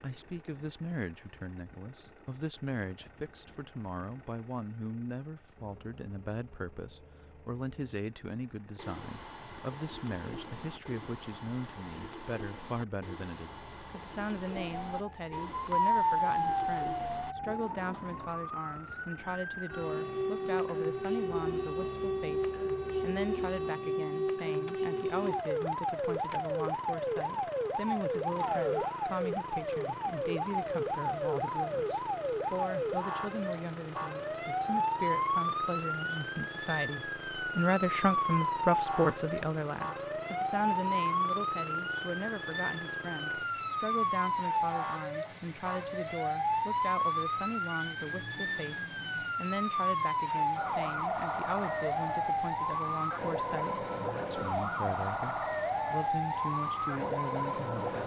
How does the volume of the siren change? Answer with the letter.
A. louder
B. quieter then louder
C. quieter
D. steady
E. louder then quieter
D.